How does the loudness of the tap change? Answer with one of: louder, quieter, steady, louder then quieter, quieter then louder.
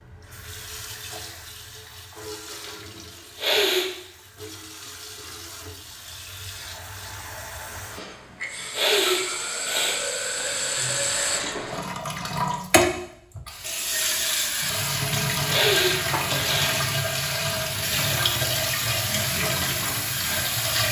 louder.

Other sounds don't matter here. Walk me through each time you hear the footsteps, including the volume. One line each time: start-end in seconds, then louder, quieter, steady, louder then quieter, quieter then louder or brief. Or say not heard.
not heard.